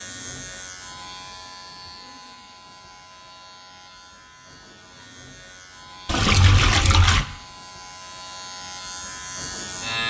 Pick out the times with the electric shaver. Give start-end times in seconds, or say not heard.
0.0-10.0.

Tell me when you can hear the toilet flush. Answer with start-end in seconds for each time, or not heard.
6.0-7.2.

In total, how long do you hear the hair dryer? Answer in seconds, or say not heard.
not heard.